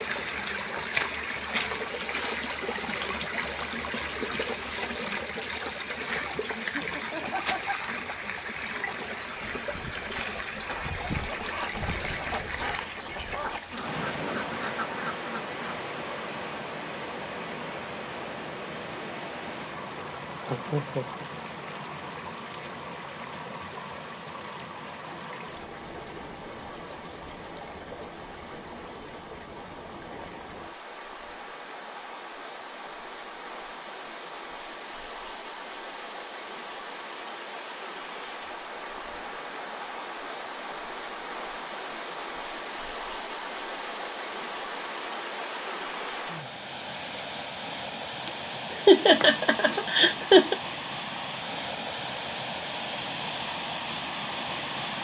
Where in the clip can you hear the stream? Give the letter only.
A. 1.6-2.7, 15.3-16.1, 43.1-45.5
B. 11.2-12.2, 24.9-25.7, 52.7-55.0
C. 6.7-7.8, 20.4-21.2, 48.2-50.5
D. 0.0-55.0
D.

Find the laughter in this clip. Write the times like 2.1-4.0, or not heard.
6.7-7.8, 20.4-21.2, 48.2-50.5.